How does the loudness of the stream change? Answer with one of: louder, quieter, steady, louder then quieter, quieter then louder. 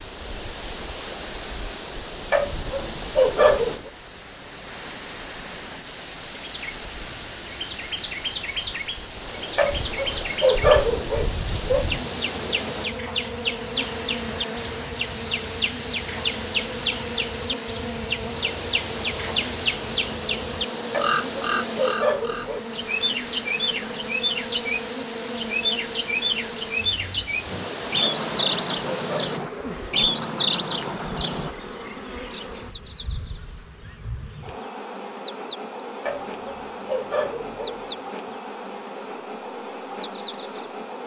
steady.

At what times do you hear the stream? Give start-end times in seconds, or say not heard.
0.0-29.4.